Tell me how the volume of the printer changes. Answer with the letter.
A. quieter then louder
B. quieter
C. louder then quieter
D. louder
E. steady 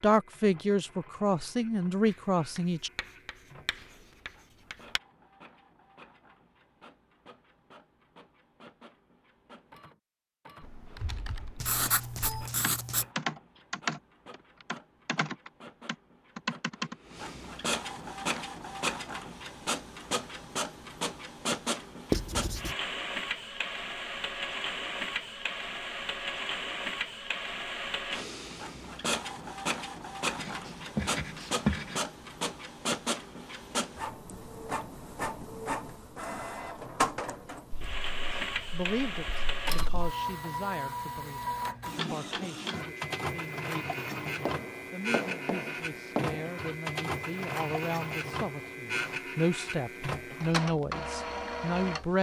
D.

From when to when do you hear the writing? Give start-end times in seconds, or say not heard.
3.0-5.0, 11.6-13.1, 22.1-22.7, 30.4-32.0, 37.7-40.1, 44.1-46.4.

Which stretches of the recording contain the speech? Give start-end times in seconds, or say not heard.
0.0-2.9, 38.3-52.1.